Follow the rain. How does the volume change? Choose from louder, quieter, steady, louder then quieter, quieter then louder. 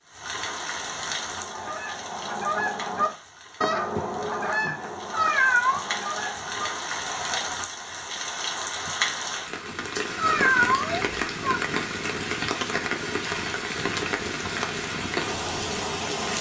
louder.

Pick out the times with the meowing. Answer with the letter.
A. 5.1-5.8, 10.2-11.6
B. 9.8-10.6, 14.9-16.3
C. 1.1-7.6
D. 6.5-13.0
A.